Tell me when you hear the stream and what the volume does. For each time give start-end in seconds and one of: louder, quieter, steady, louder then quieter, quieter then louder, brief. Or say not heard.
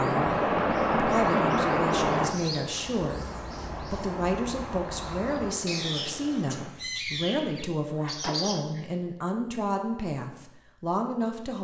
0.0-6.7 quieter.